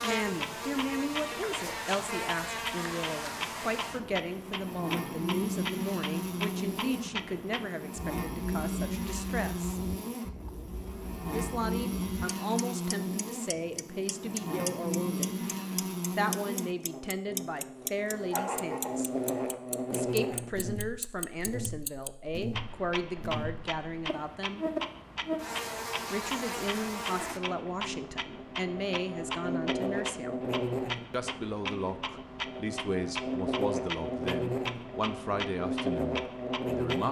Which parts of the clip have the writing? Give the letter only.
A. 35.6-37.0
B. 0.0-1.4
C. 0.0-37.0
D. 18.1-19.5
D.